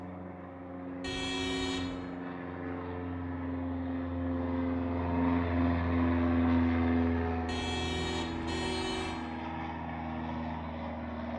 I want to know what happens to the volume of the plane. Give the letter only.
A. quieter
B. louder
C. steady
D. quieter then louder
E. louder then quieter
E.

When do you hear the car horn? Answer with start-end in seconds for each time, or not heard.
1.0-2.0, 7.5-9.2.